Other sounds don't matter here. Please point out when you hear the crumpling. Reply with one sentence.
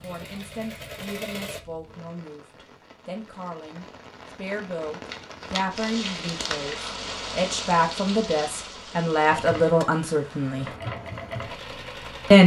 You can hear the crumpling from 5.0 to 6.9 s.